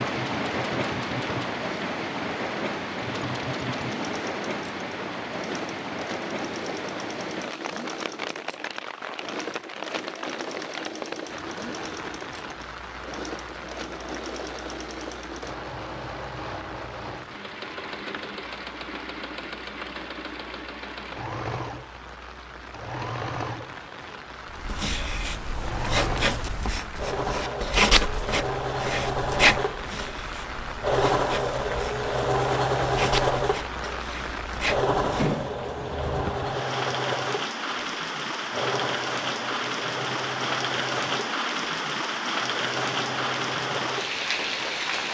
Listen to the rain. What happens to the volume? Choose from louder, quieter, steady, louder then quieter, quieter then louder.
quieter then louder.